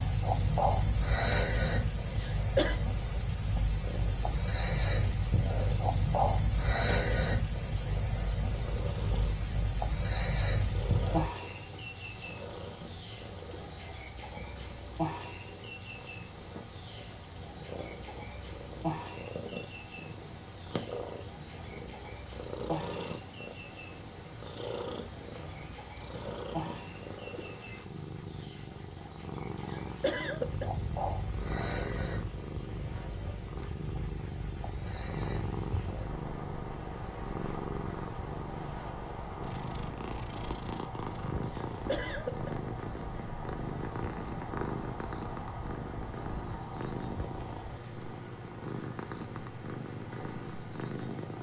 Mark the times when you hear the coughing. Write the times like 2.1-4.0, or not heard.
2.2-2.8, 29.7-30.7, 41.5-42.5.